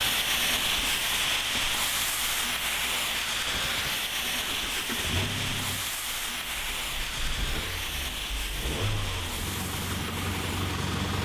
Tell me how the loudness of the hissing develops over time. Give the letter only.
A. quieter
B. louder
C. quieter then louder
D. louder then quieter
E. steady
A.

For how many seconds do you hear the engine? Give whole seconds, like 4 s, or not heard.
8 s.